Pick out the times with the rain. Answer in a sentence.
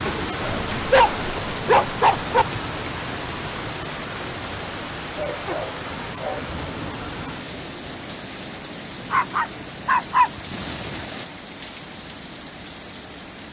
You can hear the rain from 0.0 to 13.4 s.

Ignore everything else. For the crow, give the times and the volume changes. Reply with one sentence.
The crow can't be heard in this clip.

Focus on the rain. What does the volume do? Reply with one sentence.
The volume of the rain goes down.